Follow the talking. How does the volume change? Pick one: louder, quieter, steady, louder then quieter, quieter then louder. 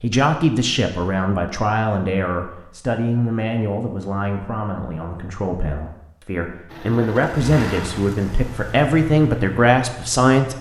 quieter then louder.